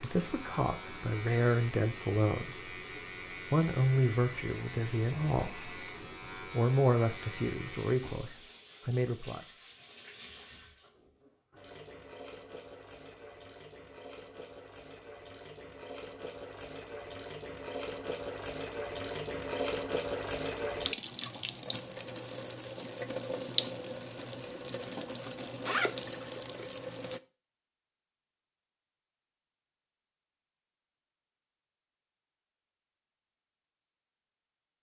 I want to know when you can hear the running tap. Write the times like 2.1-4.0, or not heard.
0.0-27.2.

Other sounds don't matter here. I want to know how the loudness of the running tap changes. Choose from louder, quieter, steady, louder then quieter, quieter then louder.
louder.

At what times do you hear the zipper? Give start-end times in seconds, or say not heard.
25.2-26.6.